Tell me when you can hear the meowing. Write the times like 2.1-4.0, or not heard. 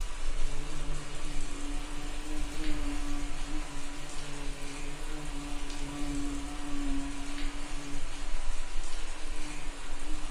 not heard.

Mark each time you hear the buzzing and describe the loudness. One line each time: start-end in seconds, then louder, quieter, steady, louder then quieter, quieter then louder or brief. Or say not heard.
0.0-10.2 louder then quieter.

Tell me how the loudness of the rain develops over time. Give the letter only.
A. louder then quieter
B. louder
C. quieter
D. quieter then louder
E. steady
E.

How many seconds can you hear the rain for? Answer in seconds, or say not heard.
10 s.